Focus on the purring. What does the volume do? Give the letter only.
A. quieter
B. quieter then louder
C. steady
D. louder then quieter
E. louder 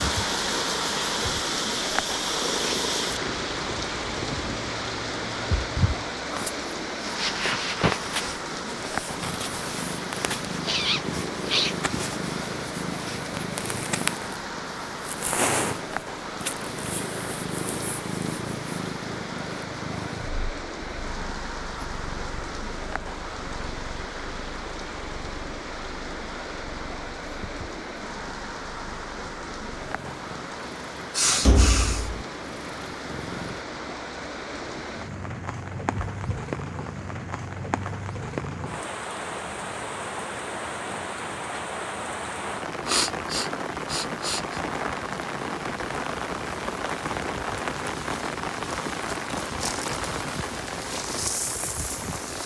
A.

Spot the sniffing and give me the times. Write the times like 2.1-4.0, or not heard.
10.6-12.0, 31.1-32.1, 42.9-44.6.